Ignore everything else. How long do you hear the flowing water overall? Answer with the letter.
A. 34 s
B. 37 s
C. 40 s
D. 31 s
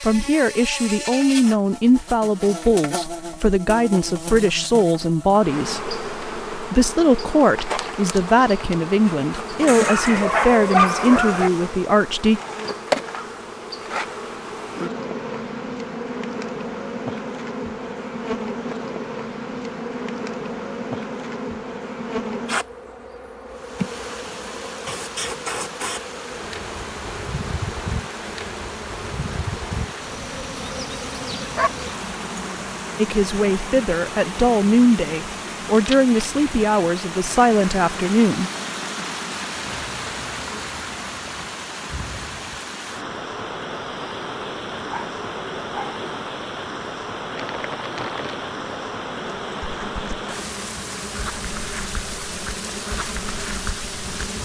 D.